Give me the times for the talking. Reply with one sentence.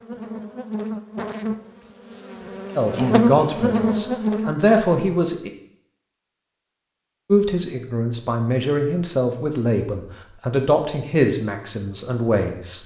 You can hear the talking from 2.8 to 5.5 s and from 7.3 to 12.8 s.